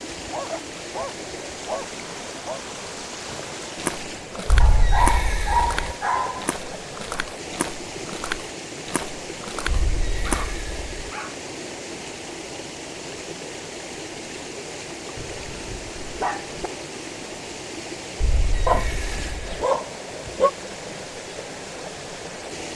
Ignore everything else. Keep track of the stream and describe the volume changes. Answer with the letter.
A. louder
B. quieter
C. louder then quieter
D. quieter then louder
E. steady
E.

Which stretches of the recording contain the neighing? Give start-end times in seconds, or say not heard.
4.5-6.0, 9.7-10.8, 18.2-19.6.